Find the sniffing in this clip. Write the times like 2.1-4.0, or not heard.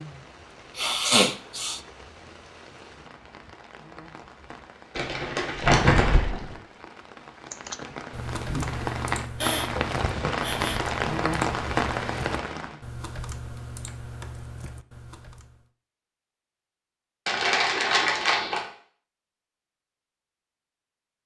0.8-1.8, 9.4-10.8, 17.9-18.6.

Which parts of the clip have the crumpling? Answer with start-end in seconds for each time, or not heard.
5.0-6.5, 17.2-18.6.